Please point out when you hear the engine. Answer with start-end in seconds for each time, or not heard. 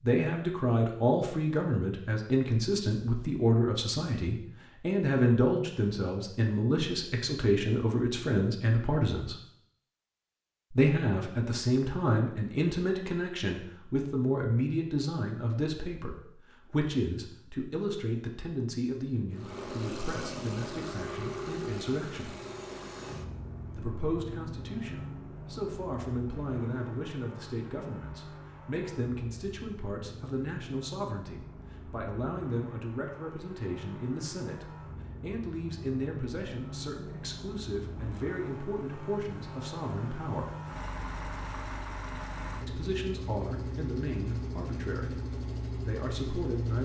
19.3-46.8.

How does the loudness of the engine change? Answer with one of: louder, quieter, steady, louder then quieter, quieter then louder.
quieter then louder.